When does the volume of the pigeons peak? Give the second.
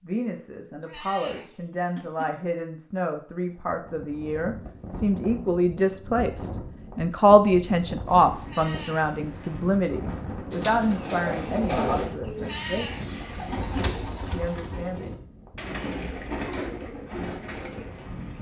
12 s.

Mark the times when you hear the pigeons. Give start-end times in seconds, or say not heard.
10.5-18.3.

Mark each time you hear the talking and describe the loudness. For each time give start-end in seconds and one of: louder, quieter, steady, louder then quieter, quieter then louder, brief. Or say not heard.
0.0-13.1 louder then quieter
14.3-15.1 brief.